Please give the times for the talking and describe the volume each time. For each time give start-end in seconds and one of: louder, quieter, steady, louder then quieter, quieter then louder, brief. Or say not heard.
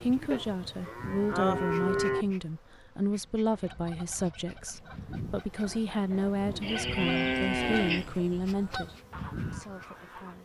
0.0-10.4 steady.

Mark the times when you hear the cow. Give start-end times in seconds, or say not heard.
0.3-2.2, 6.6-8.1.